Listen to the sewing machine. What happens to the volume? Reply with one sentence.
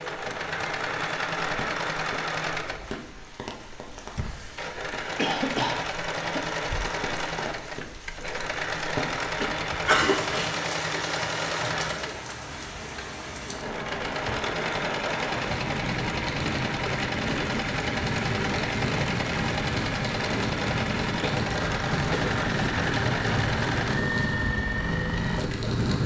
The loudness of the sewing machine stays about the same.